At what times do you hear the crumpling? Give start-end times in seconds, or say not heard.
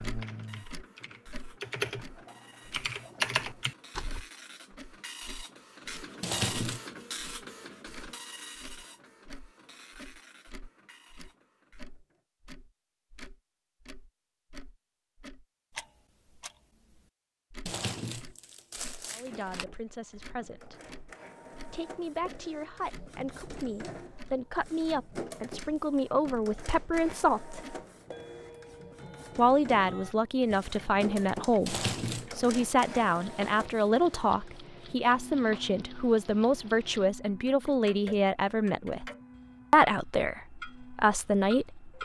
6.2-6.8, 17.6-19.6, 31.6-32.2.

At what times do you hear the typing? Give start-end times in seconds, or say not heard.
0.0-4.2.